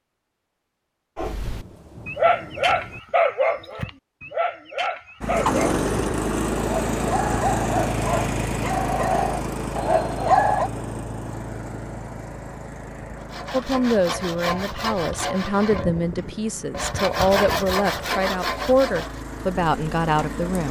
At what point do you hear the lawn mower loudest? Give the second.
6 s.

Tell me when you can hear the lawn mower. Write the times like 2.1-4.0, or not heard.
5.2-20.6.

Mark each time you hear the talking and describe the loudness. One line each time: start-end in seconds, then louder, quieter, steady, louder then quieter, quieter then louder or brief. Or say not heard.
13.5-20.6 steady.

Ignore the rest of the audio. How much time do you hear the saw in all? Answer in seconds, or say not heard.
6 s.